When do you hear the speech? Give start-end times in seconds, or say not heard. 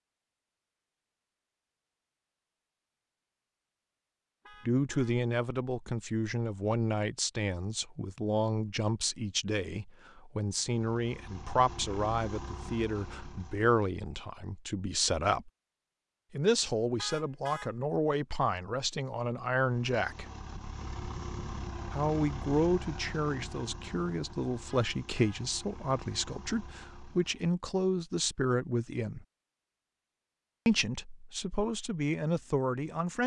4.7-15.5, 16.3-20.2, 21.9-29.2, 30.6-33.2.